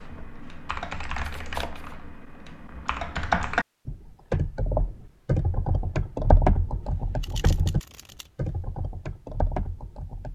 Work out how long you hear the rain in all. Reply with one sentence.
The rain can't be heard in this clip.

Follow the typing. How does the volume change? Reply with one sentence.
The loudness of the typing goes up, then down.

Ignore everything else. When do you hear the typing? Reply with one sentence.
The typing can be heard from 0.0 to 10.2 s.